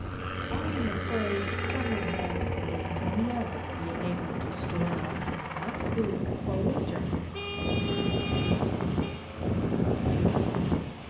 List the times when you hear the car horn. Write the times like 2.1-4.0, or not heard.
1.1-2.3, 7.3-9.2.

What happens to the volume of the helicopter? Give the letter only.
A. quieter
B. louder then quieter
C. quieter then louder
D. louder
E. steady
A.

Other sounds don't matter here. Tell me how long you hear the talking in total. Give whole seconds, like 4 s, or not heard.
7 s.